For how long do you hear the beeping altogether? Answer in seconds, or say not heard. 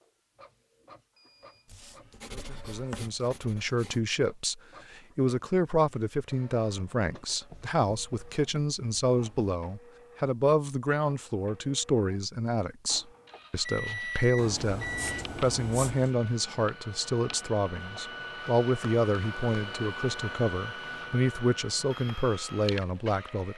2 s.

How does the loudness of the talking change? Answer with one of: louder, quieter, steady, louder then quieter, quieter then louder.
steady.